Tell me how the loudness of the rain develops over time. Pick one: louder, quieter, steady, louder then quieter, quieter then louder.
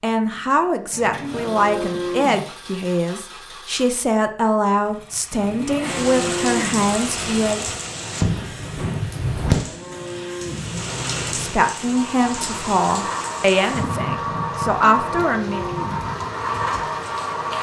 quieter.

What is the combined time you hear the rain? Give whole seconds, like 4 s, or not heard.
12 s.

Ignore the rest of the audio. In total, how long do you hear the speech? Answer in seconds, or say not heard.
12 s.